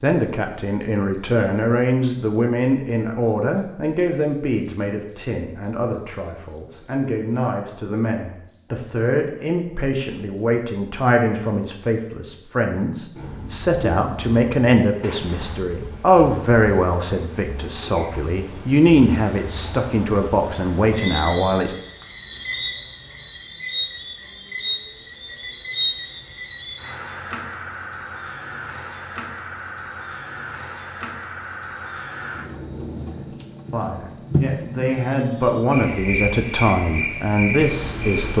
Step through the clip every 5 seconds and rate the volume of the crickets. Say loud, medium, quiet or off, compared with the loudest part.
loud, loud, medium, medium, loud, loud, loud, loud.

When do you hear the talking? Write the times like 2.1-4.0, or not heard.
0.0-21.8, 33.7-38.3.